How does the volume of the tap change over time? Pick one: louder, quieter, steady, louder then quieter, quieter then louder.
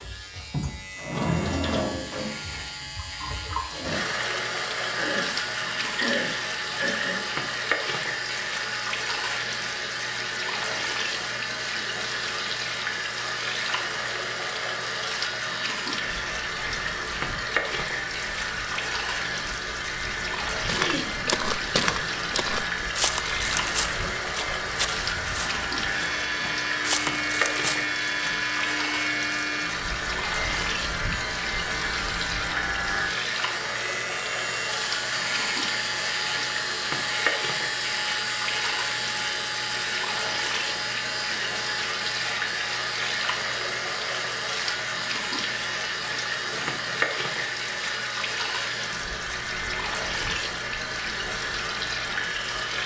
steady.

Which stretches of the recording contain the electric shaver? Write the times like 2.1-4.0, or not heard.
0.0-52.6.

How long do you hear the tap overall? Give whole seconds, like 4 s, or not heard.
53 s.